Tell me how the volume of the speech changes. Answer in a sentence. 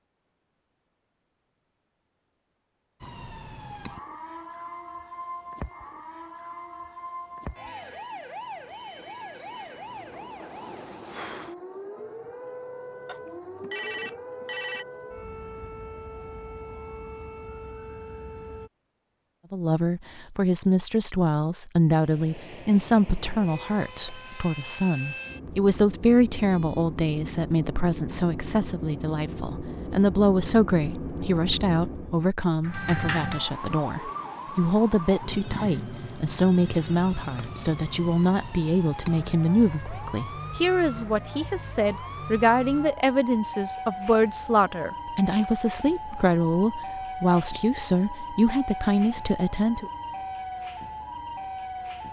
The volume of the speech stays about the same.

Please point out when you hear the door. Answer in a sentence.
The door can be heard from 32.6 to 33.5 s.